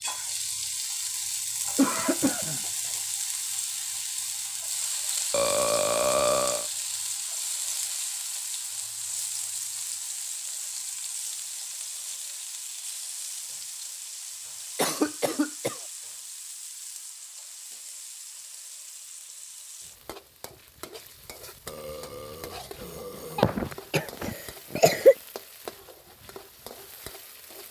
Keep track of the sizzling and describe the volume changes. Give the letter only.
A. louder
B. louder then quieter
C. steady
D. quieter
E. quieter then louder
D.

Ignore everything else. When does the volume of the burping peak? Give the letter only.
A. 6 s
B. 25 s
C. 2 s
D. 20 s
A.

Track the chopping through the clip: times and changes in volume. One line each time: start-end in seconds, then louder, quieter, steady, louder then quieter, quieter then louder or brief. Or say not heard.
not heard.